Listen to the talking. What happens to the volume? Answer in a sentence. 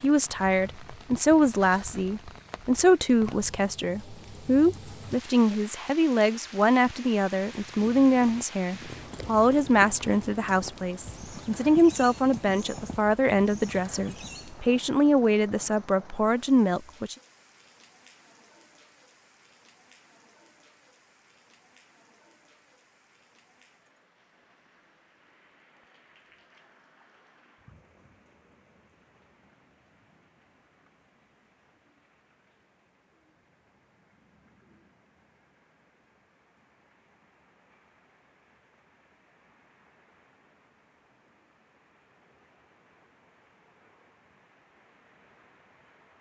The volume of the talking stays about the same.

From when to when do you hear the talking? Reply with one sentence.
You can hear the talking from 0.0 to 17.1 s.